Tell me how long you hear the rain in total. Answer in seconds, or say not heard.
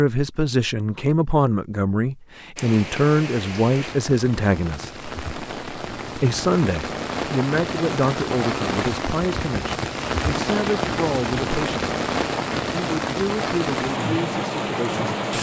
13 s.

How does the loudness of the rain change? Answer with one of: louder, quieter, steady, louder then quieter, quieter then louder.
louder.